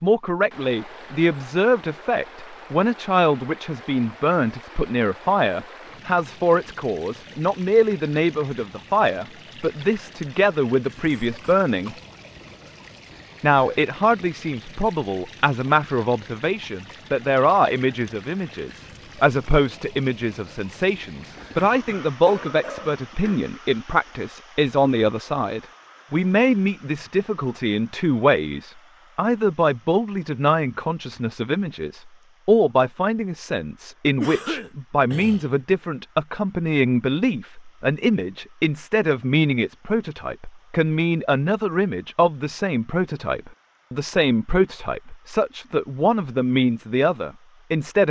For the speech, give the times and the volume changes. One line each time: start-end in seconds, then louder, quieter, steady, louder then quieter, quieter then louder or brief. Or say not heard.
0.0-11.9 steady
13.4-48.0 steady.